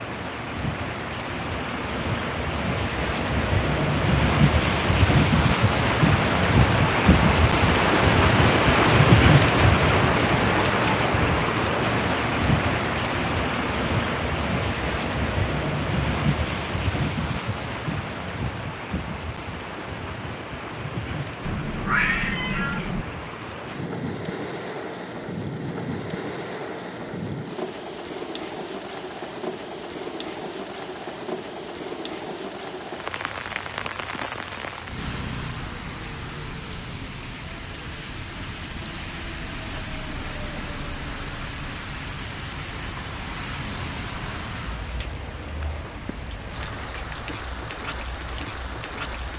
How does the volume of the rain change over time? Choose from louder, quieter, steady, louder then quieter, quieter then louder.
quieter.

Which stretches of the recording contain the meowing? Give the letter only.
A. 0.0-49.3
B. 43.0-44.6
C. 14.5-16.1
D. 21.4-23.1
D.